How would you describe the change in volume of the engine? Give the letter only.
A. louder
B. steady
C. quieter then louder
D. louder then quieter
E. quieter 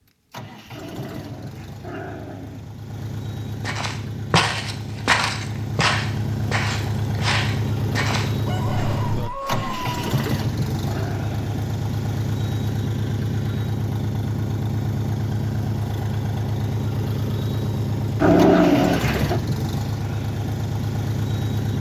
A.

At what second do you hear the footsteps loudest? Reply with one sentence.
The volume of the footsteps peaks at 5 seconds.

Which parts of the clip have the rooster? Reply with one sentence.
You can hear the rooster from 8.4 to 10.0 s.